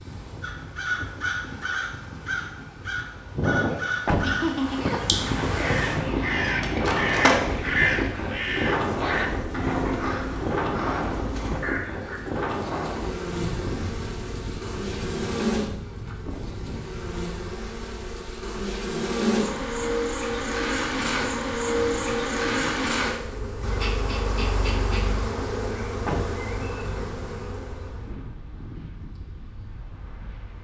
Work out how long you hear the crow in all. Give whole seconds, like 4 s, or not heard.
12 s.